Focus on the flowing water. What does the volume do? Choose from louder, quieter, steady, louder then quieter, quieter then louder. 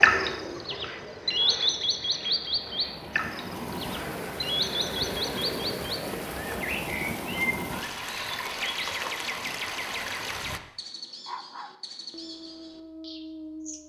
louder.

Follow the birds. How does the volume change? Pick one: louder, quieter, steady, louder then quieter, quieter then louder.
quieter.